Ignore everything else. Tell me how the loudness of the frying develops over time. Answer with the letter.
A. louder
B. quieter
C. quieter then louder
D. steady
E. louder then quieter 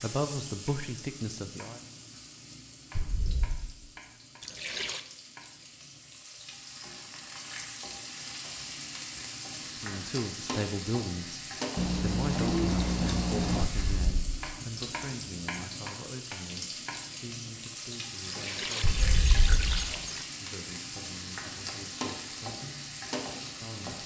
A.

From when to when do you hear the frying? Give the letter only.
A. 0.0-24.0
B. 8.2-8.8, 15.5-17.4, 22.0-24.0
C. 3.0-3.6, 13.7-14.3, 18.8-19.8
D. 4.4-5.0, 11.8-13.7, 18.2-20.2
A.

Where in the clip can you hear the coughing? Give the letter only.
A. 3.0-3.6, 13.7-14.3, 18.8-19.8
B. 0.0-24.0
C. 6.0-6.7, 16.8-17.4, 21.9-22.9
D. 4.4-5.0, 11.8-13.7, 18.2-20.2
A.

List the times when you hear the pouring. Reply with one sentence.
The pouring can be heard from 4.4 to 5.0 s, from 11.8 to 13.7 s and from 18.2 to 20.2 s.